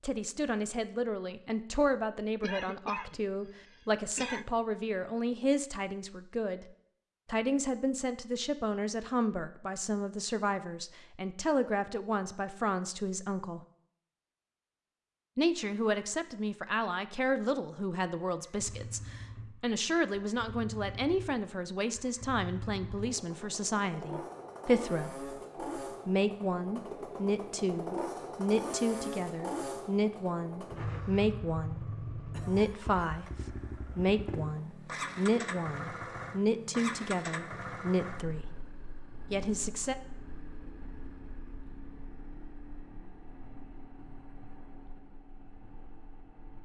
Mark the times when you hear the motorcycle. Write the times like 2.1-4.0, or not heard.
18.4-46.6.